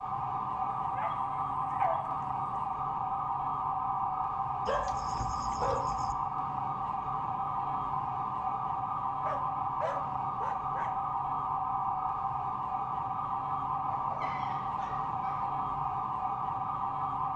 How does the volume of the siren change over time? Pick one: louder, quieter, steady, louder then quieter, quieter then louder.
steady.